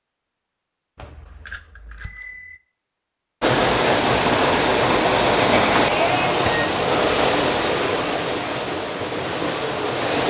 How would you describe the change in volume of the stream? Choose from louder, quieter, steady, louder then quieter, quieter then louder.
quieter.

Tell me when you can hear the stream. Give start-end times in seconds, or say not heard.
3.4-10.2.